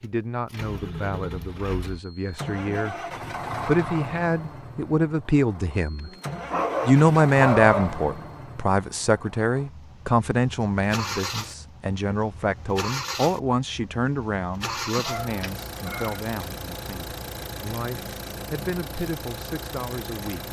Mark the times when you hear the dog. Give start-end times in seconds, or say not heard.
6.0-7.9, 14.9-16.2.